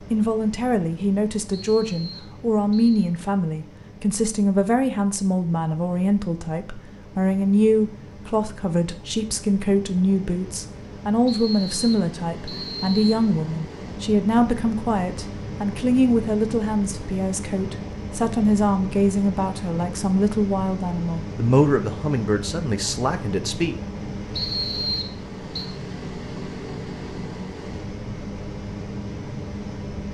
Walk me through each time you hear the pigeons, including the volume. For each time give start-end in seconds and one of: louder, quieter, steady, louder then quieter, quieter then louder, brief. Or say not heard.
not heard.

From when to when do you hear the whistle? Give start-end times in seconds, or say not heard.
1.5-3.1, 11.2-13.2, 24.3-25.7.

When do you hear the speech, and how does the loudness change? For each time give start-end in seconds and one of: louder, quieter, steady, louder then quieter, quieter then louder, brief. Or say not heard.
0.0-23.8 steady.